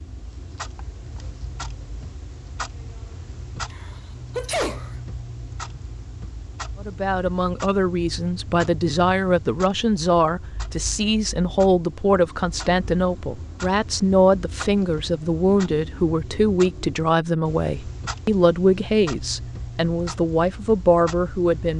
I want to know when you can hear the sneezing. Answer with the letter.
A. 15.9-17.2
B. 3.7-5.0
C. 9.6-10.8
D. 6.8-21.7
B.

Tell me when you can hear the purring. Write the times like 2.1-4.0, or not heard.
not heard.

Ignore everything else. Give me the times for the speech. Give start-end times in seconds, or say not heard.
6.8-21.7.